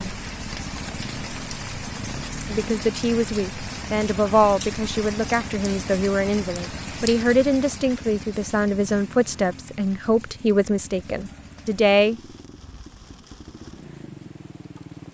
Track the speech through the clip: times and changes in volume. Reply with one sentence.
The speech can be heard from 2.5 to 12.2 s, at a steady volume.